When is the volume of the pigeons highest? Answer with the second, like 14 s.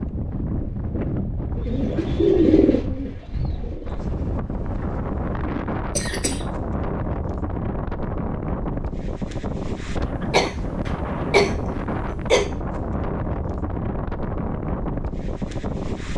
2 s.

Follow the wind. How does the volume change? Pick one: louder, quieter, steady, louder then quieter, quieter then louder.
steady.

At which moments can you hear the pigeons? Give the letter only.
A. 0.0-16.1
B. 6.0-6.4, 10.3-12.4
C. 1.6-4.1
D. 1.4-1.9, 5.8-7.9
C.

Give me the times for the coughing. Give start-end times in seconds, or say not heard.
6.0-6.4, 10.3-12.4.